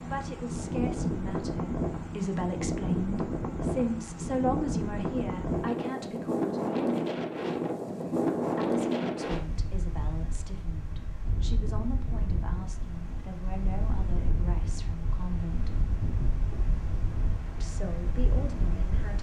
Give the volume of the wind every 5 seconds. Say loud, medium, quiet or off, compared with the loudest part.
loud, loud, medium, medium.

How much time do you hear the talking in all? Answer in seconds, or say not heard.
16 s.